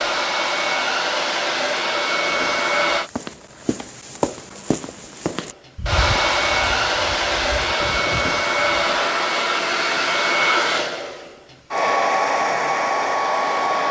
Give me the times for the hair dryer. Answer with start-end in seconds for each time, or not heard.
0.0-3.1, 5.4-13.8.